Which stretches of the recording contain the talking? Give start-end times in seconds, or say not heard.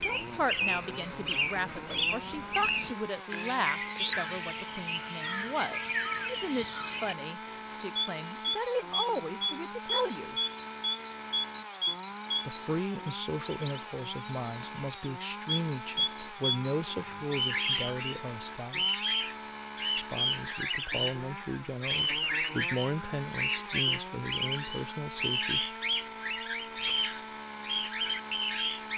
0.0-10.3, 12.4-18.9, 19.9-25.6.